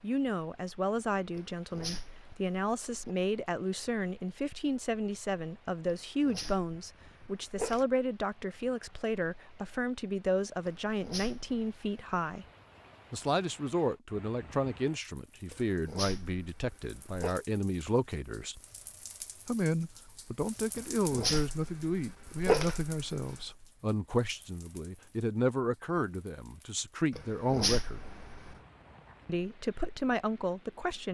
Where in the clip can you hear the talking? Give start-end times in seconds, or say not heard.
0.0-12.4, 13.1-18.6, 19.4-28.0, 29.2-31.0.